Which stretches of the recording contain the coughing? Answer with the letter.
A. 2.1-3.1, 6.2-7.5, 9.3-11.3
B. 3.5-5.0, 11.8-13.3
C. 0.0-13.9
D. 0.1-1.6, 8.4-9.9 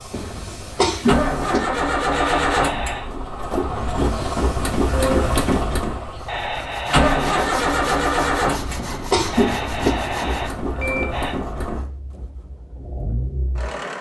D.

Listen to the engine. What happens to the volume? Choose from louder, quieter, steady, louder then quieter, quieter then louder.
quieter.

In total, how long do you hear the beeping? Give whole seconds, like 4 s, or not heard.
4 s.